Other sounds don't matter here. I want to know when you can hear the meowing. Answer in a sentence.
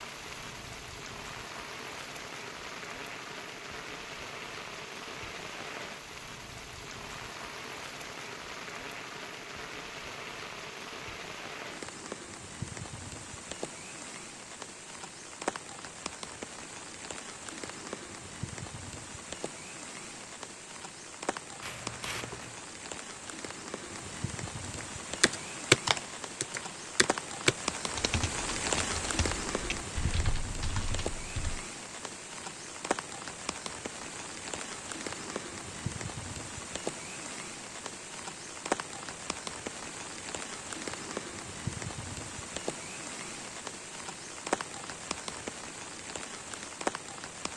You can hear the meowing from 21.6 to 22.6 s.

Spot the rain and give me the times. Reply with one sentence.
You can hear the rain from 0.0 to 47.5 s.